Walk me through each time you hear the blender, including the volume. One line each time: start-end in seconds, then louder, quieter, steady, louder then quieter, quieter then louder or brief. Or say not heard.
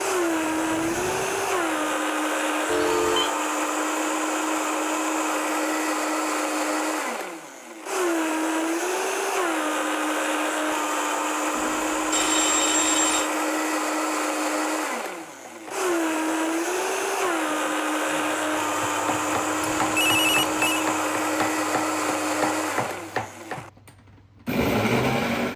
0.0-25.5 steady.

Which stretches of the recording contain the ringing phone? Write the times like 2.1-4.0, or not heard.
2.6-3.3, 11.6-13.3, 19.6-20.9.